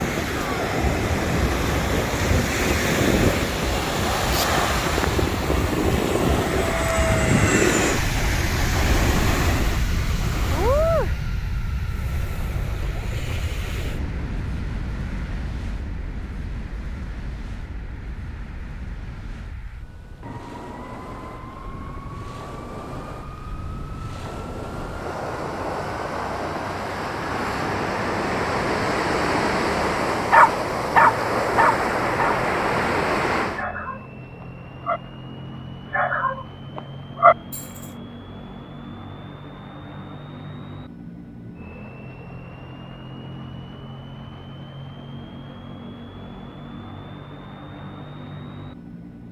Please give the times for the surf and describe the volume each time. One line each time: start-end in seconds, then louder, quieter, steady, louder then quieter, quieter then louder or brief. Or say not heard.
0.0-33.6 quieter then louder.